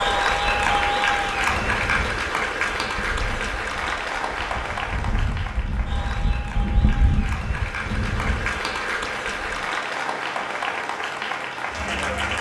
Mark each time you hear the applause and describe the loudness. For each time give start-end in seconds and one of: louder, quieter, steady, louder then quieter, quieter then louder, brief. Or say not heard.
0.0-12.3 quieter then louder.